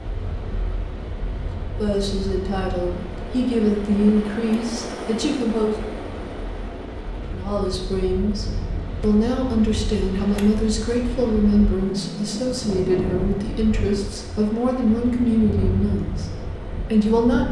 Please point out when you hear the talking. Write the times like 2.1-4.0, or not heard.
1.8-5.8, 7.3-16.3, 16.9-17.4.